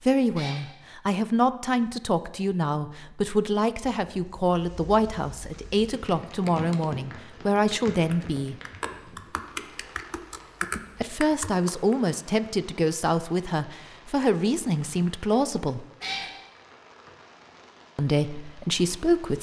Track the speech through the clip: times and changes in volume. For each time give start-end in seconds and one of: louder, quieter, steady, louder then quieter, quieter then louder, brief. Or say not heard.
0.1-8.6 steady
11.0-15.8 steady
17.9-19.3 brief.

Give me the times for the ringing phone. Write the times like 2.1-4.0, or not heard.
not heard.